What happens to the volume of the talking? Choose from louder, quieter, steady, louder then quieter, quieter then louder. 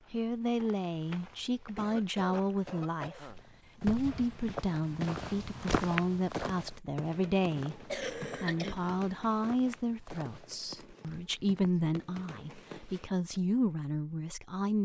steady.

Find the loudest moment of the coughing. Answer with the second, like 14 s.
8 s.